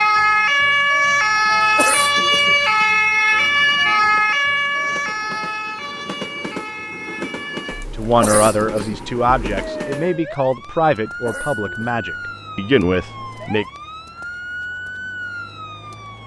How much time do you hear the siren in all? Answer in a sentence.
The siren can be heard for 16 seconds in total.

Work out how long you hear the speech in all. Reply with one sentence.
The speech can be heard for 6 seconds in total.